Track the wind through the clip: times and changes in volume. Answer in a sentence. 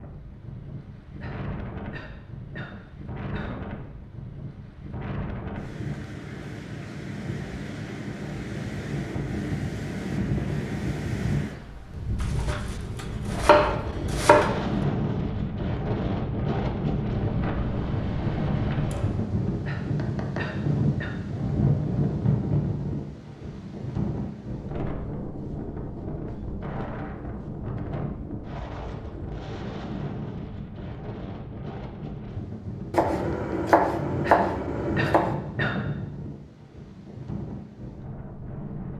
The wind can be heard from 0.0 to 38.9 s, getting louder then quieter.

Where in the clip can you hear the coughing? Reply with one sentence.
The coughing can be heard from 1.2 to 3.6 s, from 19.6 to 21.1 s and from 34.2 to 36.0 s.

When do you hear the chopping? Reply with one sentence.
The chopping can be heard from 12.2 to 14.6 s and from 32.9 to 35.4 s.